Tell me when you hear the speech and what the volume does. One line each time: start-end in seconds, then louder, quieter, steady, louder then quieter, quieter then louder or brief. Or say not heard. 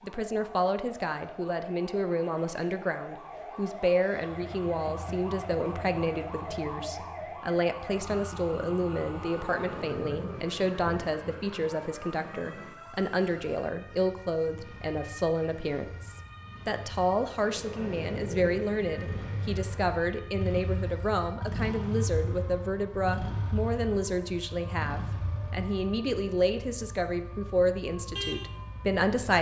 0.0-29.3 steady.